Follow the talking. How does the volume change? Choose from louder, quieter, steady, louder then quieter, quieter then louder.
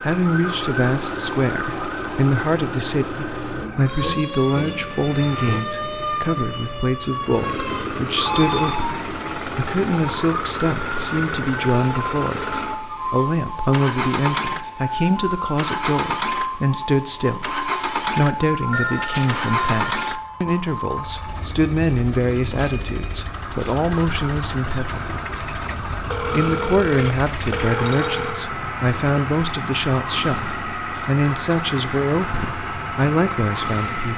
steady.